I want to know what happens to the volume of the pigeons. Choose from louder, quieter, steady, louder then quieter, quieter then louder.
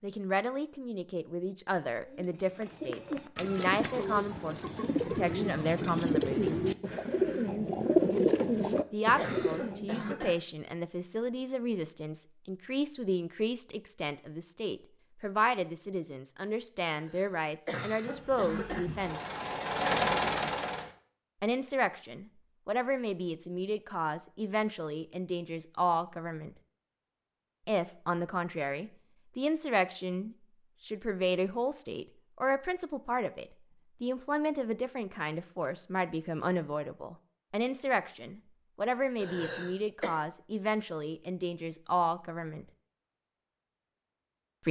louder.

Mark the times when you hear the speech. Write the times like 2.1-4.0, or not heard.
0.0-6.6, 8.9-19.2, 21.4-26.6, 27.6-42.6.